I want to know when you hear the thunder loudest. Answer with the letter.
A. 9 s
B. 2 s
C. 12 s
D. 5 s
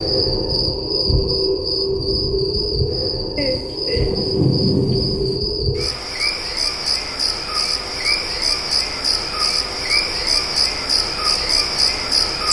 D.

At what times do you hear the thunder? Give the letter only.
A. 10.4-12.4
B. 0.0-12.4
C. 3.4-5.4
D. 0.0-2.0
C.